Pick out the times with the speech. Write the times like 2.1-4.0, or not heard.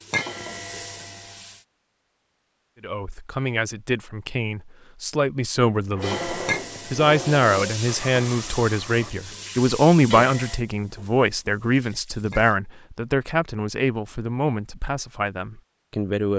2.8-16.3.